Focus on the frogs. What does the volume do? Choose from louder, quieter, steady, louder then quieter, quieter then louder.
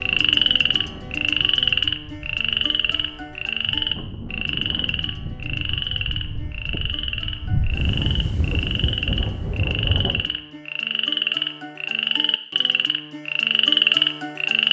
quieter then louder.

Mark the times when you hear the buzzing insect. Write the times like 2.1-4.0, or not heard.
not heard.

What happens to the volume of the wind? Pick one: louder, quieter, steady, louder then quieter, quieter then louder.
louder.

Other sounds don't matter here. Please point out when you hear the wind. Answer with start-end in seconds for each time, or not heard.
0.0-10.3.